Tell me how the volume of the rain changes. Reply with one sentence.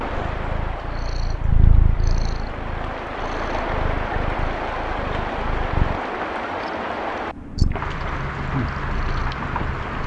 The loudness of the rain goes up.